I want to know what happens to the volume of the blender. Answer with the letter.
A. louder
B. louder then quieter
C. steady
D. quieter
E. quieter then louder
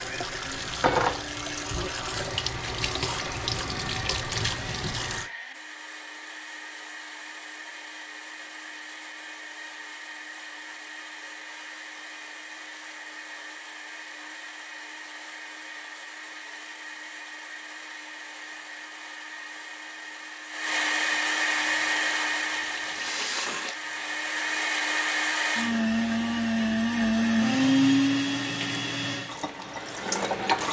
A.